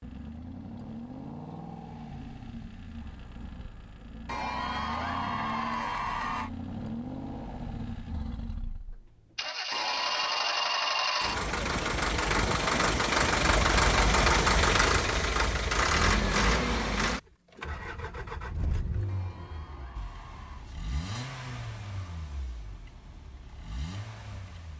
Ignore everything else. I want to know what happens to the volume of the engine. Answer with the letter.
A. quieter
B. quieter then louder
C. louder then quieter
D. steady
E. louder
C.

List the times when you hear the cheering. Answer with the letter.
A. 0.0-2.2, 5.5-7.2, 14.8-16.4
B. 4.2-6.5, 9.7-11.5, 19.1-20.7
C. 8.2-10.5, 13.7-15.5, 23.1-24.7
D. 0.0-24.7
B.